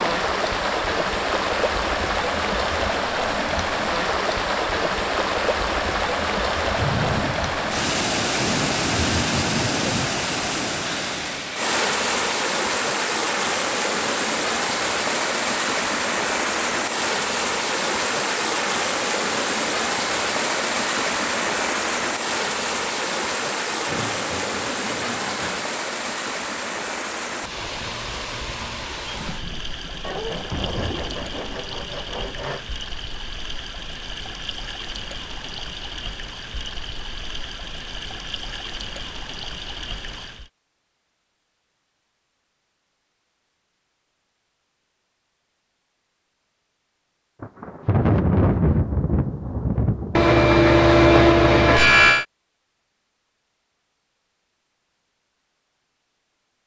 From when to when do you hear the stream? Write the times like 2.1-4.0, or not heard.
0.0-40.5.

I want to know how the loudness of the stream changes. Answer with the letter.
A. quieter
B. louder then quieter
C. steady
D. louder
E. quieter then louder
A.